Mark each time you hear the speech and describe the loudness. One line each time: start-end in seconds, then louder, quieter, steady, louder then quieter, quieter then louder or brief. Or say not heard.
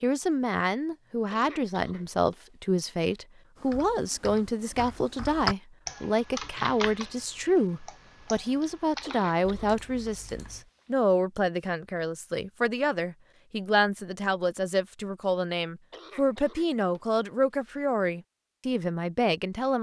0.0-19.7 steady.